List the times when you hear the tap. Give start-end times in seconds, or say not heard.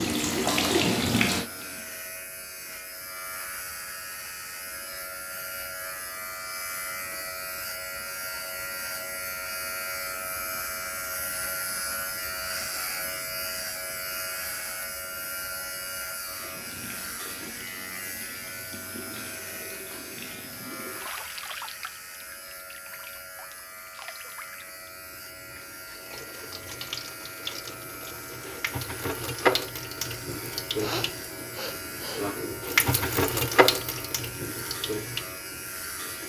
0.0-2.0, 16.2-36.2.